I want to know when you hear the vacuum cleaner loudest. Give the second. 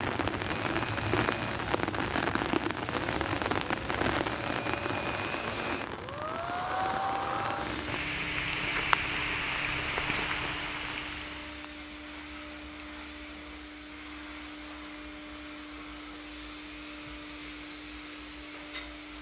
7 s.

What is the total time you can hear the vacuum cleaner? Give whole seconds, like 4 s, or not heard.
19 s.